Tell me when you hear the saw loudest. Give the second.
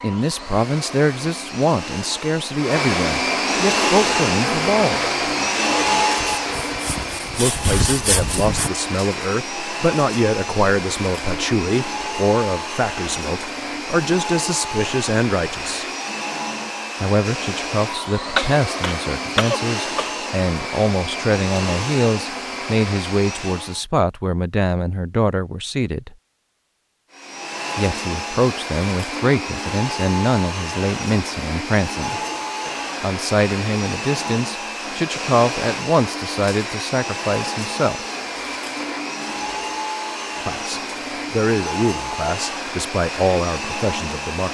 8 s.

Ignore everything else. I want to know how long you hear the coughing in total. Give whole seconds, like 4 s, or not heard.
2 s.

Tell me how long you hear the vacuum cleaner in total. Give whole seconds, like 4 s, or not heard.
41 s.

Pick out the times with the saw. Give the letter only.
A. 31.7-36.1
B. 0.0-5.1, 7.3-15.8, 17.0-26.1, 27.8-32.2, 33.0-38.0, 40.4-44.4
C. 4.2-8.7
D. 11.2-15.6
C.